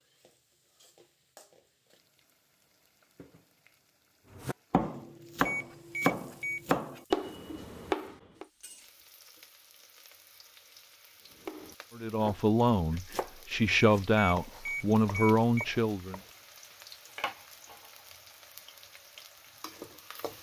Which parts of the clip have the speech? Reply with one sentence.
The speech can be heard from 11.9 to 16.2 s.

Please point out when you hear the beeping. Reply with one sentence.
You can hear the beeping from 5.5 to 6.6 s and from 13.7 to 15.7 s.